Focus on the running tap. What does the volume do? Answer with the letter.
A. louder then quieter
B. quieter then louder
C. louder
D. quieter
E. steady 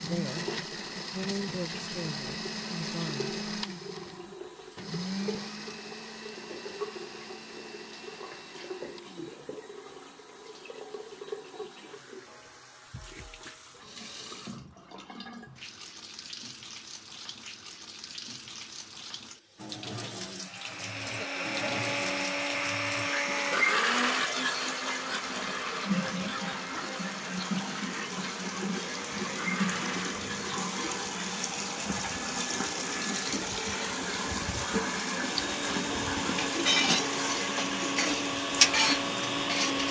C.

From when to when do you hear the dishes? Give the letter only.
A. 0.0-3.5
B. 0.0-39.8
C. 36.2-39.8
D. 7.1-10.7
C.